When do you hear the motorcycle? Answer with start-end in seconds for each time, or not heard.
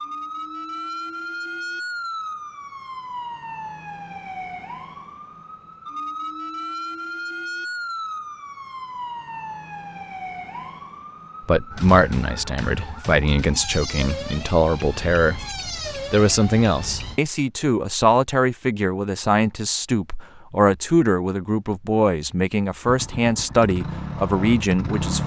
22.9-25.2.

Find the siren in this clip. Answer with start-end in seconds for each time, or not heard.
0.0-17.2.